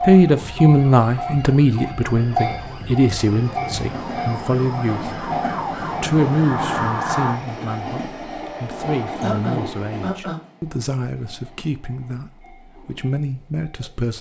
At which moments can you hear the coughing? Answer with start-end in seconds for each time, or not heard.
9.2-10.4.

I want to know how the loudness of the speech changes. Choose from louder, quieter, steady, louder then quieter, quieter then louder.
quieter.